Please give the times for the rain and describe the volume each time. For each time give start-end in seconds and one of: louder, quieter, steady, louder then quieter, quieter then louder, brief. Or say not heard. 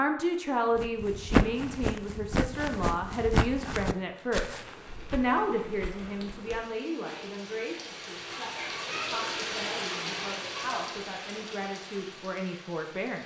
4.0-13.2 louder then quieter.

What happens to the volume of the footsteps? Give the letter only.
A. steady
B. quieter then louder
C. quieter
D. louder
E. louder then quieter
C.